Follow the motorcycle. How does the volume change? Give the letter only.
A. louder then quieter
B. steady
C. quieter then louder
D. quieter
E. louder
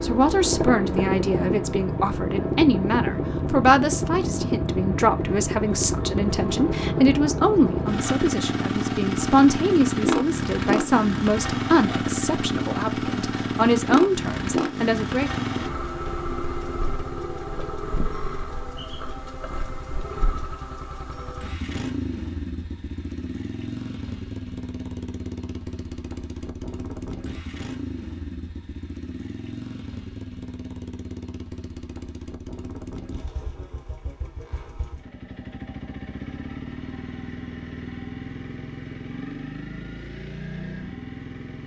D.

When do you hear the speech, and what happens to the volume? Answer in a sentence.
You can hear the speech from 0.0 to 15.3 s, at a steady volume.